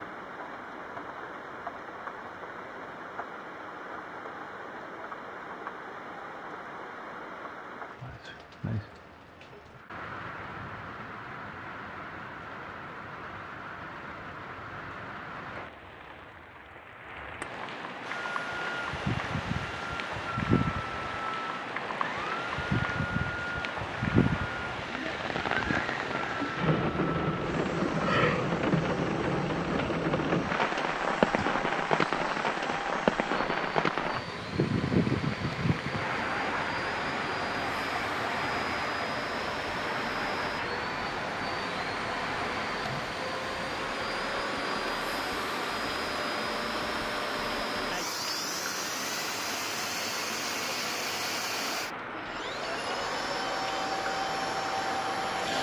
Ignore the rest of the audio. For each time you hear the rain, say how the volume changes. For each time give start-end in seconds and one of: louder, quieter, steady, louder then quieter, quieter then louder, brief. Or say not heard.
0.0-55.5 louder then quieter.